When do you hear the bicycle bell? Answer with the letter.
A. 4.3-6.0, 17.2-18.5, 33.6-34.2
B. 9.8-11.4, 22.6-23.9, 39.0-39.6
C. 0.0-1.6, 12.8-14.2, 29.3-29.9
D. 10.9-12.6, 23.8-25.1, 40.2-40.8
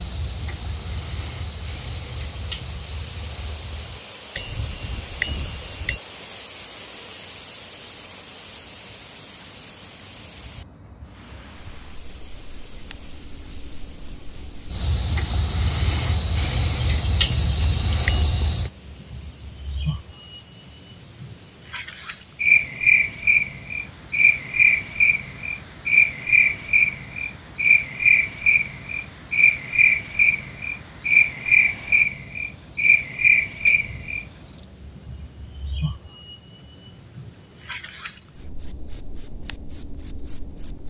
A.